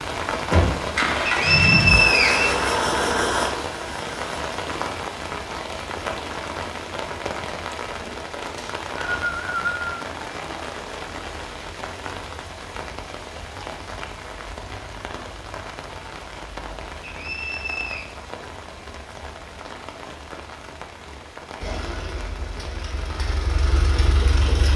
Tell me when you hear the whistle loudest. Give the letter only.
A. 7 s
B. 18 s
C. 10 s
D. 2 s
D.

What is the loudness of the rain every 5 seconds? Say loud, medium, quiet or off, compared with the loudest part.
loud, loud, medium, medium, medium.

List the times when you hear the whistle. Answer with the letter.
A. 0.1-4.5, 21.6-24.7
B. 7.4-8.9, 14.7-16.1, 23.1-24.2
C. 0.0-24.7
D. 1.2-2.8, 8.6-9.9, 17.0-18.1
D.